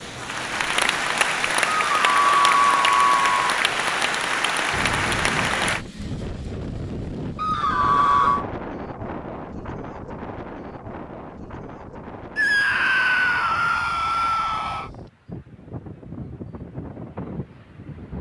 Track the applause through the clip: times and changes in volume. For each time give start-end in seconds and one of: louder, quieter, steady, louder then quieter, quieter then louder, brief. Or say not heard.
0.0-5.8 steady.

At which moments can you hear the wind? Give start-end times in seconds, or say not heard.
4.7-18.1.